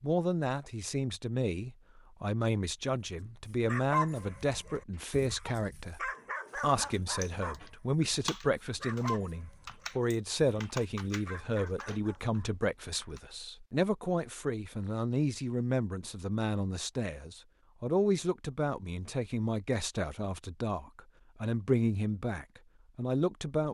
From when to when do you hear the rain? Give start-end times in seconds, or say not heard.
not heard.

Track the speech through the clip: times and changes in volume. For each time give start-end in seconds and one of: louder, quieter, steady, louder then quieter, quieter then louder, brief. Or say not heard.
0.0-23.6 steady.